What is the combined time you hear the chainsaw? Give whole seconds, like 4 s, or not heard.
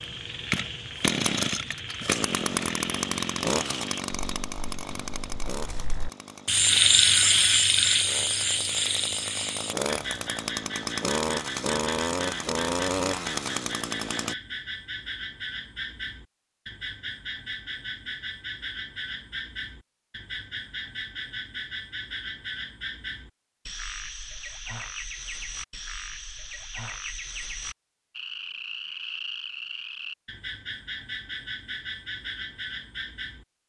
14 s.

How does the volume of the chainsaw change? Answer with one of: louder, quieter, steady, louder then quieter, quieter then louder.
quieter then louder.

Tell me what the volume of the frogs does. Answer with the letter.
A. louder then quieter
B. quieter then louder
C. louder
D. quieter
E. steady
D.